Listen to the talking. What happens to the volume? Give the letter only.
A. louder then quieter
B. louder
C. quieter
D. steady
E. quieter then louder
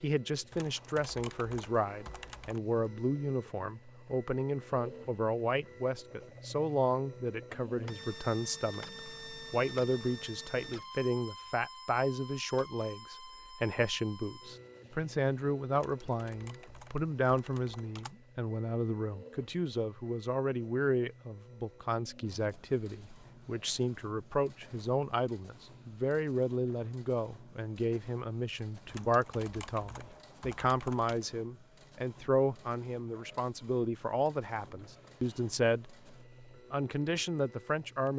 D.